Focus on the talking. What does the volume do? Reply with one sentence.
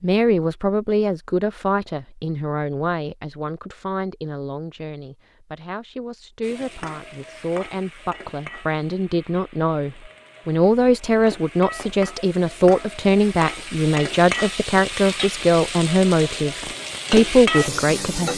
The loudness of the talking goes down, then up.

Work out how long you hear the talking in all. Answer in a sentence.
You can hear the talking for 18 seconds altogether.